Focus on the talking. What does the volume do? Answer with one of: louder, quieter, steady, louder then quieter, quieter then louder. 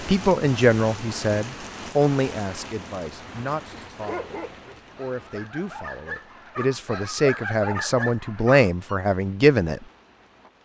quieter then louder.